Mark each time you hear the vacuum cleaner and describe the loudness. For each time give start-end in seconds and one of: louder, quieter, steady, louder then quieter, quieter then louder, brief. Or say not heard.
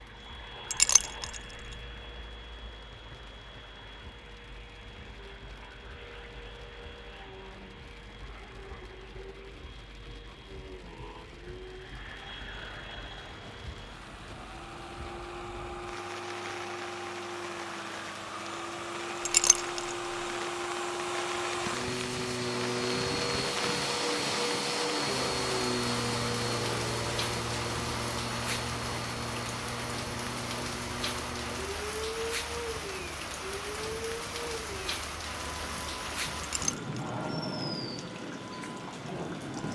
0.0-39.6 louder then quieter.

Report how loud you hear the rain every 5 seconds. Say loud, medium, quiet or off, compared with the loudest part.
quiet, quiet, quiet, medium, loud, loud, loud, loud.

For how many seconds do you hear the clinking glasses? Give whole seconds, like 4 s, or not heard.
2 s.